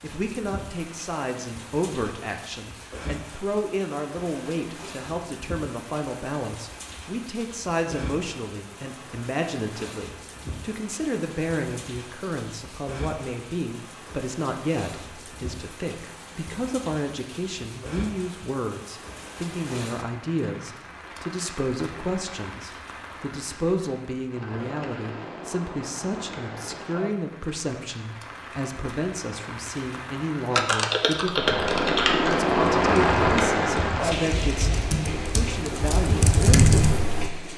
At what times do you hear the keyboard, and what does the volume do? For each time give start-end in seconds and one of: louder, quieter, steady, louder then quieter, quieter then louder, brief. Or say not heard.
30.6-37.3 quieter then louder.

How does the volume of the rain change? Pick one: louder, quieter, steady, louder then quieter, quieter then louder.
louder.